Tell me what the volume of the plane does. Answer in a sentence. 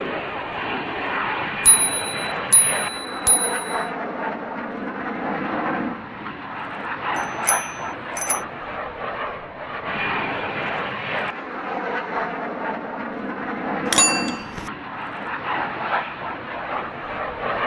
The loudness of the plane stays about the same.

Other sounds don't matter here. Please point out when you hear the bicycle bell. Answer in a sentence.
The bicycle bell can be heard from 1.6 to 3.8 s, from 7.5 to 8.4 s and from 13.8 to 14.7 s.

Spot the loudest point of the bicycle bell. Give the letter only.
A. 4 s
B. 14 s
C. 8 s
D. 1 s
B.